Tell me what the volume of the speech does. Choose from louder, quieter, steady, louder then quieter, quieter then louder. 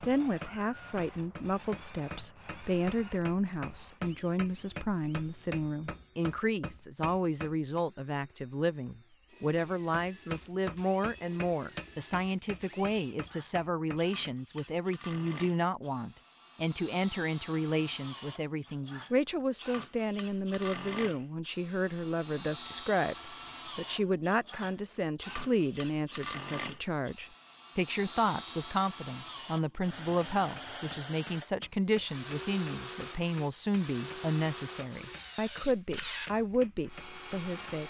steady.